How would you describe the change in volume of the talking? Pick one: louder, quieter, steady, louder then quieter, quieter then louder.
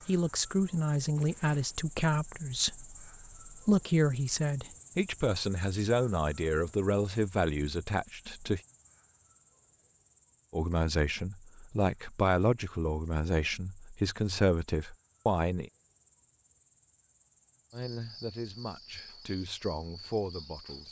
quieter.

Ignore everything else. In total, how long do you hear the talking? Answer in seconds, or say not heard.
17 s.